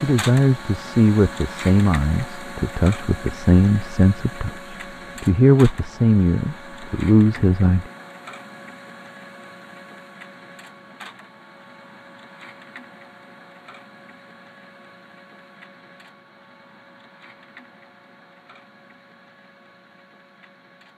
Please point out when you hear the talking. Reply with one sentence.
You can hear the talking from 0.0 to 7.8 s.